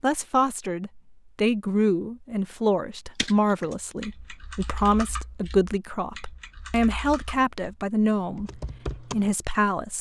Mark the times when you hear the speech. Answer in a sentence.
You can hear the speech from 0.0 to 9.9 s.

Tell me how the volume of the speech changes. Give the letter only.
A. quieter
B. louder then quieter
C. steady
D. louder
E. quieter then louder
C.